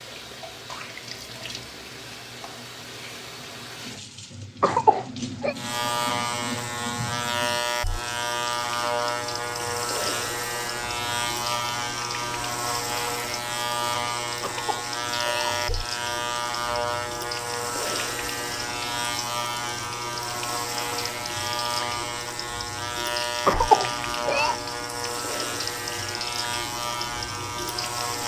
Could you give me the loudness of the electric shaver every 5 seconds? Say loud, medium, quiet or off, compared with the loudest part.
off, loud, loud, loud, loud, loud.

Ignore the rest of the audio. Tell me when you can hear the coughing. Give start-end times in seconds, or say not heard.
4.6-5.5, 14.4-15.8, 23.4-24.6.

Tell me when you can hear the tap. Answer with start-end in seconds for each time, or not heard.
0.0-28.2.